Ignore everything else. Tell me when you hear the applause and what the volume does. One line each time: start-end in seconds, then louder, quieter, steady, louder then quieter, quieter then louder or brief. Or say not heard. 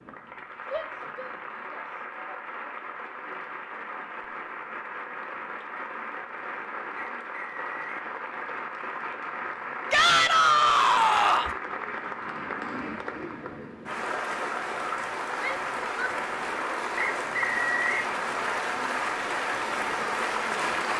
0.0-20.9 louder.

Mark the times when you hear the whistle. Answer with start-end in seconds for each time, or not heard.
7.0-8.1, 16.9-17.9.